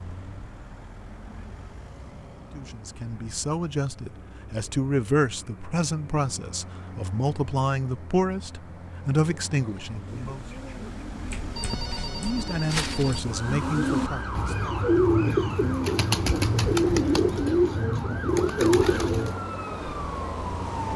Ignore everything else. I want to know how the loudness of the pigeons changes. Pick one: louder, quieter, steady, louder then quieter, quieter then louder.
louder.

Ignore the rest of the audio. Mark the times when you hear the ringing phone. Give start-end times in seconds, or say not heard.
11.2-13.2.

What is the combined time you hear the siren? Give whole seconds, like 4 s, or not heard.
8 s.